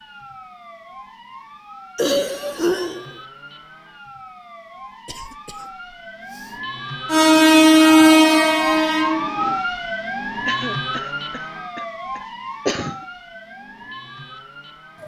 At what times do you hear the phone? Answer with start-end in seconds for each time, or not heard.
not heard.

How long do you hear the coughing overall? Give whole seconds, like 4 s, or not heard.
5 s.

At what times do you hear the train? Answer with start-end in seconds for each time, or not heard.
7.1-9.6.